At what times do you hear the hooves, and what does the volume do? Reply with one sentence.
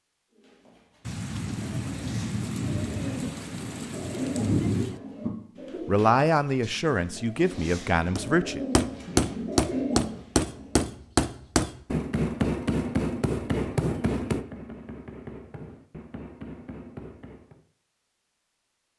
The hooves can't be heard in this clip.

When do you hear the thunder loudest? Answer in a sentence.
The loudest moment of the thunder is at 5 seconds.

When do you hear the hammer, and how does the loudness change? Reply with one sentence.
You can hear the hammer from 8.2 to 17.6 s, getting quieter.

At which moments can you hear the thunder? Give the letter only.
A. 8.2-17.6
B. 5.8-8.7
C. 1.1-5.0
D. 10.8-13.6
C.